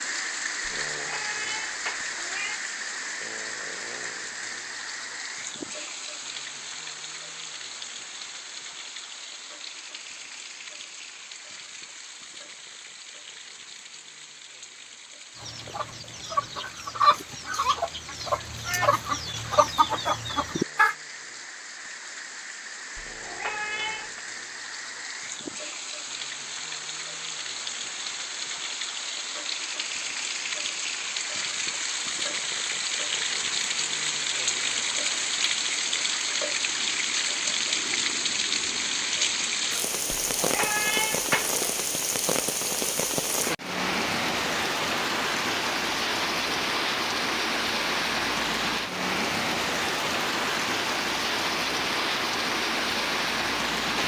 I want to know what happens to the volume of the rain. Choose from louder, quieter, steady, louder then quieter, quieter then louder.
quieter then louder.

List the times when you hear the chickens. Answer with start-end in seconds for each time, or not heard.
15.3-20.9.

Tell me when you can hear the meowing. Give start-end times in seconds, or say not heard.
0.8-2.6, 22.9-24.2, 40.1-41.6.